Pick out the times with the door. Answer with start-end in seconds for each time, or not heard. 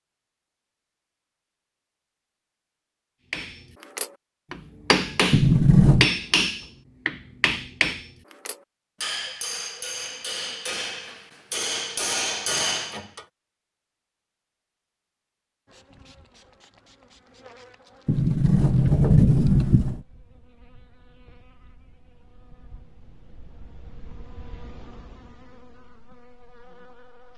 5.3-6.0, 18.1-20.0.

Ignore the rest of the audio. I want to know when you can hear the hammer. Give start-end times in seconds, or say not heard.
3.3-13.2.